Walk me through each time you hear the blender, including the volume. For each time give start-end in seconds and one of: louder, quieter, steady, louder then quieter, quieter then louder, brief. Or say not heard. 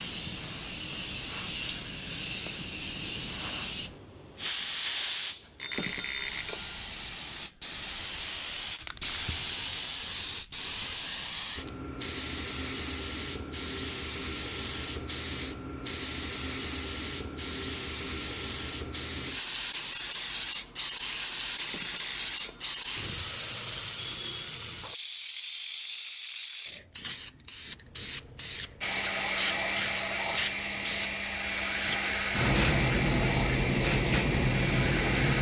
28.8-35.3 steady.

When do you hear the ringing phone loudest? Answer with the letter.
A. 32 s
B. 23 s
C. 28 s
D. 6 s
D.